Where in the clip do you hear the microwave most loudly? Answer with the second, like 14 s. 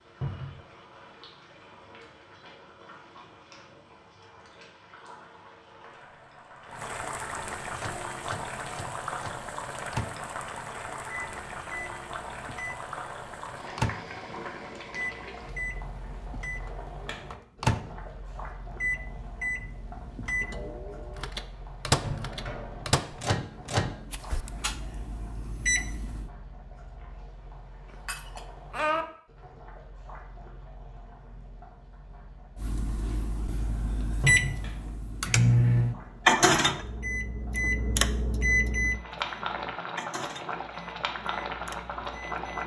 36 s.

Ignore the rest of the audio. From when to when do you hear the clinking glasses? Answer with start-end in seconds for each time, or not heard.
27.9-29.1.